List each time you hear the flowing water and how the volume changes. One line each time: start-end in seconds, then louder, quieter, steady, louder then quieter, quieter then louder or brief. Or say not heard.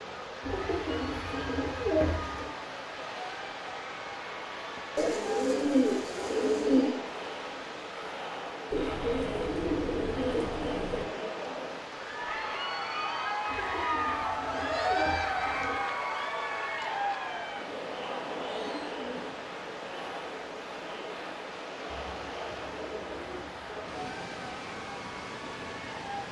0.0-26.2 steady.